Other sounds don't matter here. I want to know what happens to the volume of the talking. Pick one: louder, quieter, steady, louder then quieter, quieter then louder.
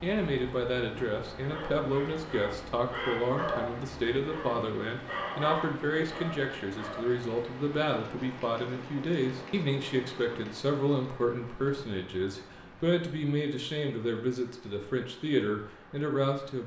steady.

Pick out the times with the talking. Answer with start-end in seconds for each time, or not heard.
0.0-16.6.